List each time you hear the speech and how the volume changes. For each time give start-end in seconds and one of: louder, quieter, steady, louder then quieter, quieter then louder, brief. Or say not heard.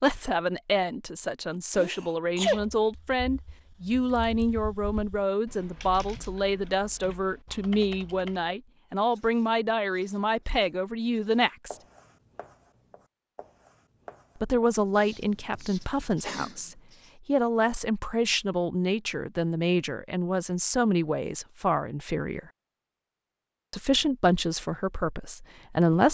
0.0-11.8 steady
14.4-22.4 steady
23.7-26.0 brief.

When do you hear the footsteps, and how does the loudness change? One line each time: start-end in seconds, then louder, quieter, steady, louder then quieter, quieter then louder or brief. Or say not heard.
not heard.